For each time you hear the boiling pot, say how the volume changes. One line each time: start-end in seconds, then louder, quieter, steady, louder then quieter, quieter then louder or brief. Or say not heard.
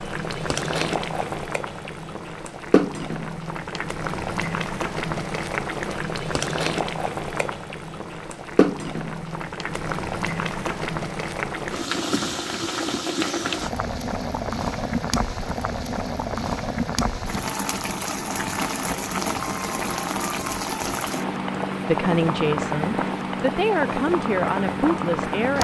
0.0-25.5 steady.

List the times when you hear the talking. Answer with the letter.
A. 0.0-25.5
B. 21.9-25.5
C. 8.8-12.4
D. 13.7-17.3
B.